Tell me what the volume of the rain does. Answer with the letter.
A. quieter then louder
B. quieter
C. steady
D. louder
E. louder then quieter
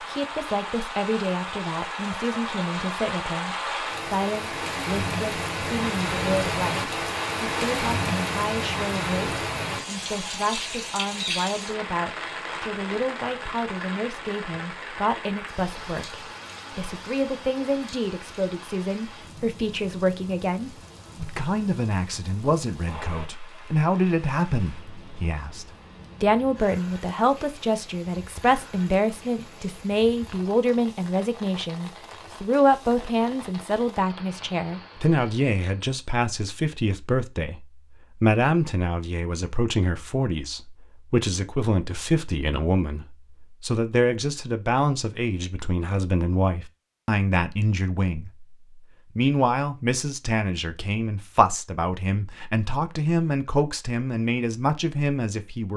B.